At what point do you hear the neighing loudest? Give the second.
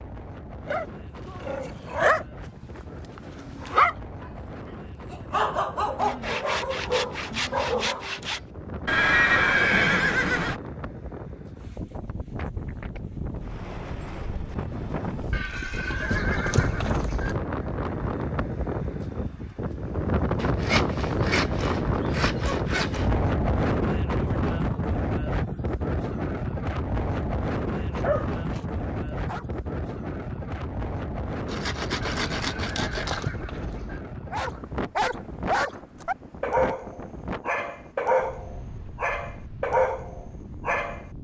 9 s.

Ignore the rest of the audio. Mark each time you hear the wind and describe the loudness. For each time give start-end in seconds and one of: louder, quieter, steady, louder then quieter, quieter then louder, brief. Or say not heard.
0.0-41.1 louder then quieter.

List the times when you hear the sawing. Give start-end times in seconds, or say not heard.
6.0-8.4, 20.4-23.1, 31.4-33.3.